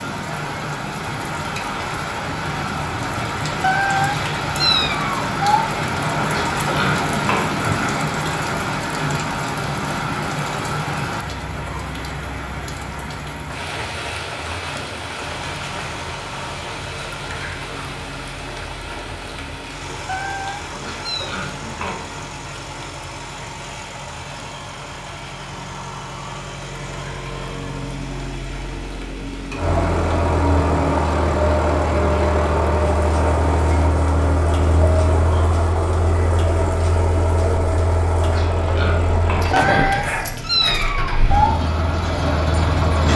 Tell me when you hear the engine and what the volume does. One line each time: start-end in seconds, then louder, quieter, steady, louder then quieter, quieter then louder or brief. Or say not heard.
15.2-43.1 louder.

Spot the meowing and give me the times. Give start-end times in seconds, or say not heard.
3.6-5.7, 20.1-21.4, 39.5-41.5.